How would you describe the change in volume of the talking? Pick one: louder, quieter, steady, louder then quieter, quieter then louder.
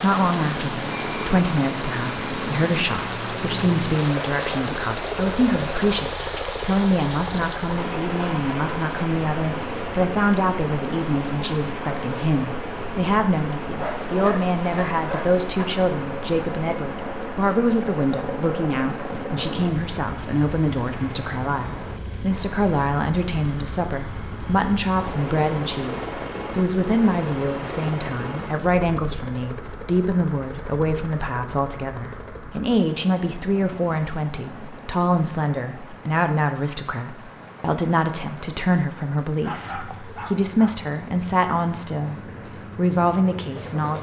steady.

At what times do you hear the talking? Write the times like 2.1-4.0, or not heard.
0.0-43.9.